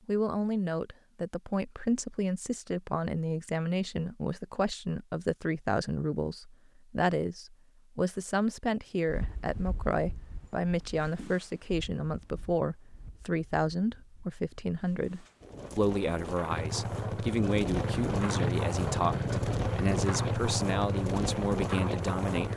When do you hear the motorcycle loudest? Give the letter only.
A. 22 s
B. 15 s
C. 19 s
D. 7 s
C.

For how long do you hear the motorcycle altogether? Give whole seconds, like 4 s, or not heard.
6 s.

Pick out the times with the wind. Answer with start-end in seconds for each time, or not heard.
9.1-22.5.